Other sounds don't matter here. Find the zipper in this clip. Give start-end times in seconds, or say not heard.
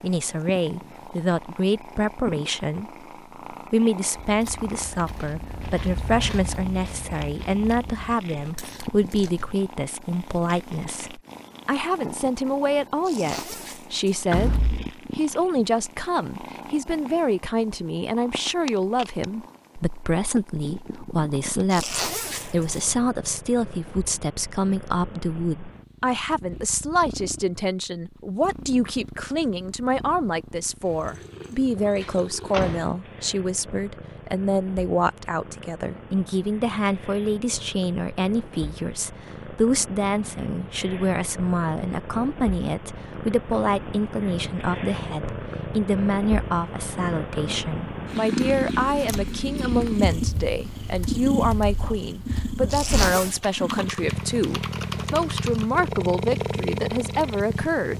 13.0-14.2, 21.7-22.9, 52.6-53.4.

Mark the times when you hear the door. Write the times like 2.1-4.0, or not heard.
14.3-14.9, 31.9-32.9.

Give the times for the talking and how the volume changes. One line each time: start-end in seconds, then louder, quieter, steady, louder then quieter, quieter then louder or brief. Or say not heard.
0.0-57.9 steady.